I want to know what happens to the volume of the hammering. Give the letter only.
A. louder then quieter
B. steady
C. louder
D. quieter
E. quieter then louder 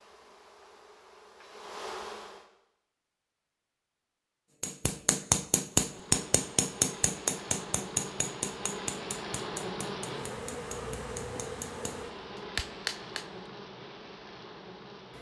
E.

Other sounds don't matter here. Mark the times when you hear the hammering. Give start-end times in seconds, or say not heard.
4.6-13.2.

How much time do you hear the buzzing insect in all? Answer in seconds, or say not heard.
12 s.